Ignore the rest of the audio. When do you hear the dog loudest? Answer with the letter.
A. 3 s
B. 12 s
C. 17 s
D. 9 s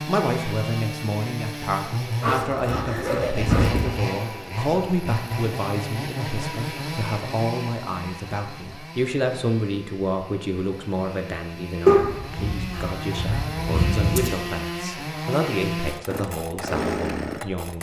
B.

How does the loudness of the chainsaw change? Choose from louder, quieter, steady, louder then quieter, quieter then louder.
quieter then louder.